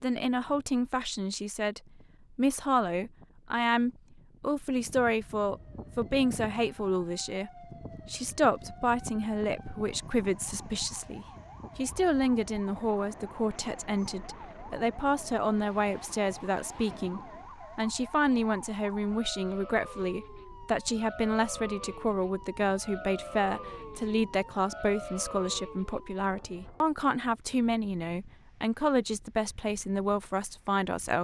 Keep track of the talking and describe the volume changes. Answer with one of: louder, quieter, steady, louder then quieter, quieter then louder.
steady.